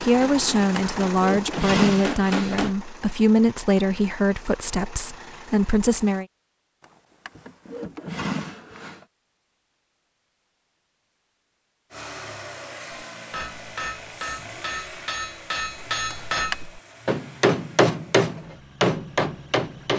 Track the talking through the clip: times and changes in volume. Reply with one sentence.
You can hear the talking from 0.0 to 6.2 s, at a steady volume.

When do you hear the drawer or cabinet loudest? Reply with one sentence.
The loudest moment of the drawer or cabinet is at 2 seconds.